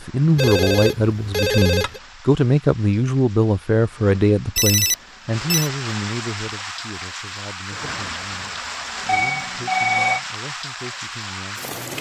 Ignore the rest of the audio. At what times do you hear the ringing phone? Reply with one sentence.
You can hear the ringing phone from 0.3 to 2.0 s, from 4.5 to 5.7 s and from 9.1 to 10.2 s.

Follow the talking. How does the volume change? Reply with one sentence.
The loudness of the talking goes down.